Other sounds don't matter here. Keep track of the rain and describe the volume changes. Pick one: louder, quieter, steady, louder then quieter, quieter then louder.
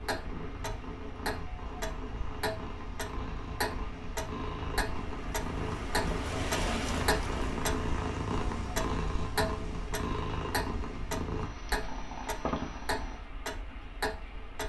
louder then quieter.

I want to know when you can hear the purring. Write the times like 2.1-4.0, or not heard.
0.0-13.2.